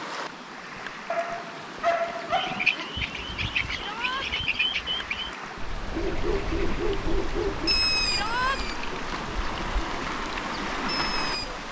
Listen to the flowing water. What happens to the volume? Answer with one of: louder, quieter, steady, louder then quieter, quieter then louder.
louder.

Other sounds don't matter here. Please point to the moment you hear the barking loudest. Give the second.
2 s.